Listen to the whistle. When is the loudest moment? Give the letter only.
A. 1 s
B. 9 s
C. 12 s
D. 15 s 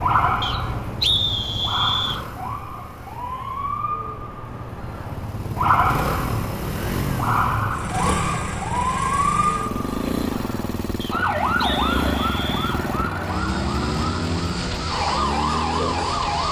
A.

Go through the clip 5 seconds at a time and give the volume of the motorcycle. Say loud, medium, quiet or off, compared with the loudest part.
medium, loud, loud, loud.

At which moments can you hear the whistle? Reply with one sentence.
You can hear the whistle from 0.4 to 2.2 s and from 11.0 to 12.8 s.